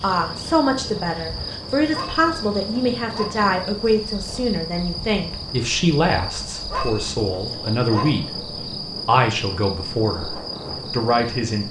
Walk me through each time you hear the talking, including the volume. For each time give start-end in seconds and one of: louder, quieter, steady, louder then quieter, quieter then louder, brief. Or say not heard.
0.0-11.6 steady.